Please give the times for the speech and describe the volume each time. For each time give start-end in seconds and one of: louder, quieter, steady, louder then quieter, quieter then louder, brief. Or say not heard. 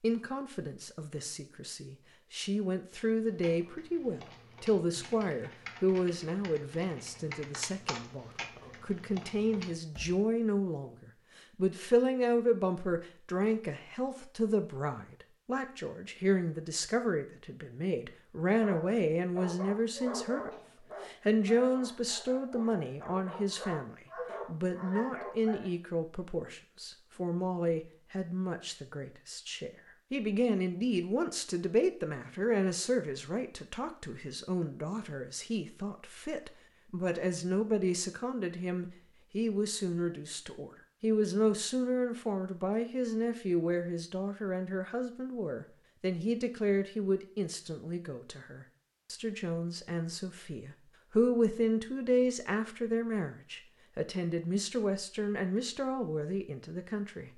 0.0-57.3 steady.